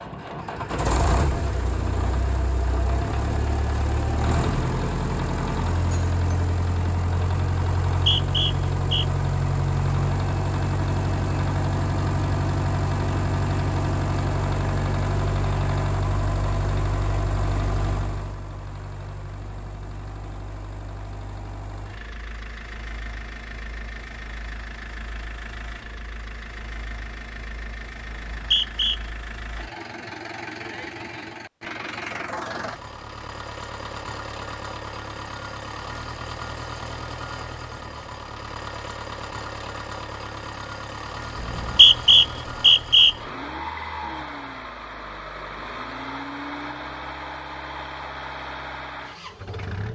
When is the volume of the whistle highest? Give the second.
42 s.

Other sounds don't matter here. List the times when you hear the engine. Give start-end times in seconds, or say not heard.
0.0-49.9.